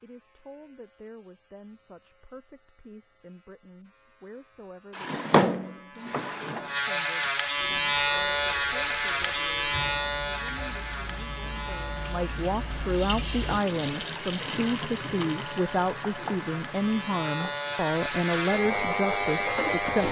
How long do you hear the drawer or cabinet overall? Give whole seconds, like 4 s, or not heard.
2 s.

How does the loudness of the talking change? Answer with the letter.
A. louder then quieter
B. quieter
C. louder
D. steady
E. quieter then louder
C.